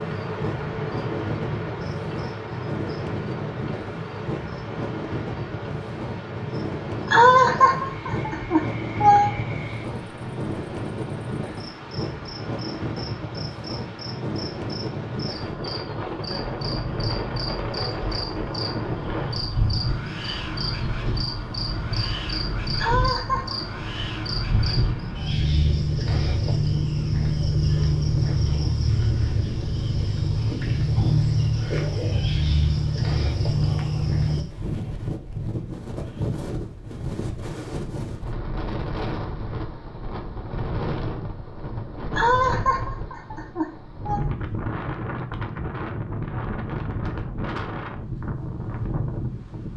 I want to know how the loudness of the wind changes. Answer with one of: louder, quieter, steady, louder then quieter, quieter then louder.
steady.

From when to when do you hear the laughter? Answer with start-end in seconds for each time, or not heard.
7.0-9.3, 22.8-23.6, 42.1-44.2.